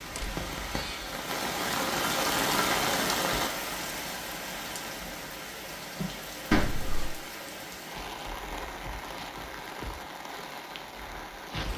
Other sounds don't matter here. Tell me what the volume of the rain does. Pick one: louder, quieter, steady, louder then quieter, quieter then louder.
quieter.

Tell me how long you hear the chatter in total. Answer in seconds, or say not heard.
not heard.